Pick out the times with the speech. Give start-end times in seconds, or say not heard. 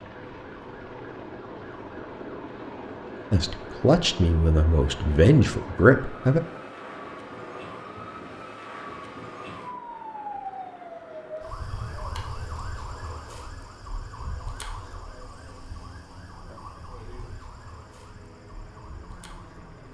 3.3-6.4.